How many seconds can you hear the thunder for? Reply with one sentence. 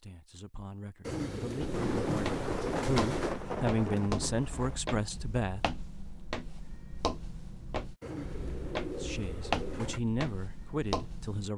You can hear the thunder for 3 seconds altogether.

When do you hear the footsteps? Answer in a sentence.
You can hear the footsteps from 1.6 to 11.5 s.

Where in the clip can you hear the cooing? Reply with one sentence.
You can hear the cooing from 1.1 to 3.4 s and from 8.0 to 10.0 s.